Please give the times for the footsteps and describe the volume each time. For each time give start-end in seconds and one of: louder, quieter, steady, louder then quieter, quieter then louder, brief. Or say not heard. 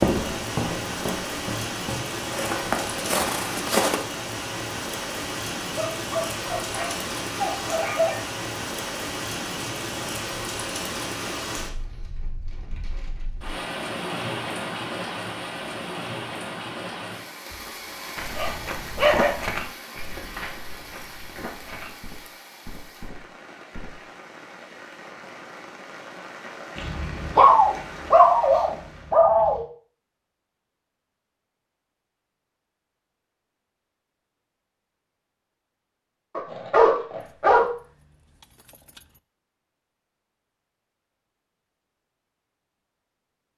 0.0-4.0 quieter then louder
18.1-24.0 quieter.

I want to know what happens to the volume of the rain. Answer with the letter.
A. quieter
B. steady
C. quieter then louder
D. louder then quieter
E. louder
A.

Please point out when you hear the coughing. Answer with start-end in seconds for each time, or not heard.
not heard.